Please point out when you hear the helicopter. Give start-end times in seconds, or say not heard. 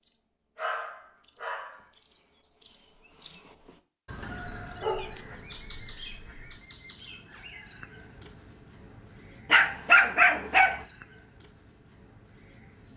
not heard.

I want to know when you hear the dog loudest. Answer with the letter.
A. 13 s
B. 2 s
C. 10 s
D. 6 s
C.